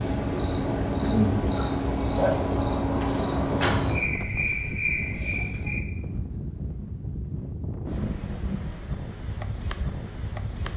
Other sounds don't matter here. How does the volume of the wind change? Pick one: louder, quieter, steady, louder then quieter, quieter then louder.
steady.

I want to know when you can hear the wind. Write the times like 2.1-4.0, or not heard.
0.0-10.7.